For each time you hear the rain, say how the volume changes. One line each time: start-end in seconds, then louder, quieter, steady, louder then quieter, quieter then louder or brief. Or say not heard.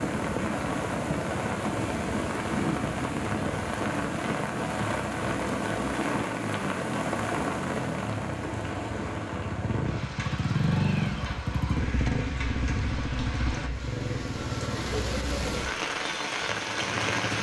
0.0-17.3 quieter then louder.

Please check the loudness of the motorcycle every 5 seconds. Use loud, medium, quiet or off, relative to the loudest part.
medium, medium, loud, medium.